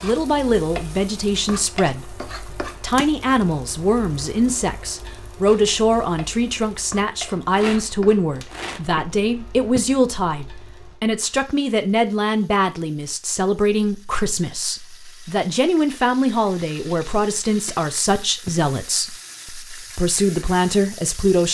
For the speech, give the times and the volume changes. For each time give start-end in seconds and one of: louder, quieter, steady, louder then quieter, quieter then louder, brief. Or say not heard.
0.0-21.5 steady.